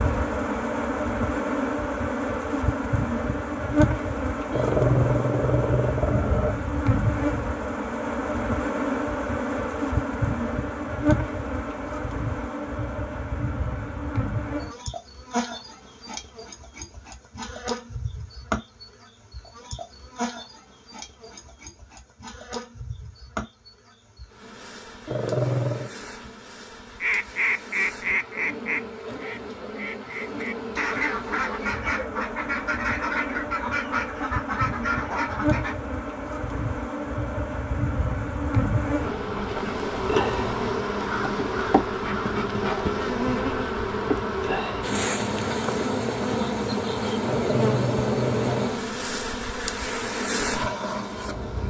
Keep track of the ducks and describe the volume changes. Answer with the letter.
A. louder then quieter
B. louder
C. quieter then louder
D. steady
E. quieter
C.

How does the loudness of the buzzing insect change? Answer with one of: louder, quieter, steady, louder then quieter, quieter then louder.
quieter then louder.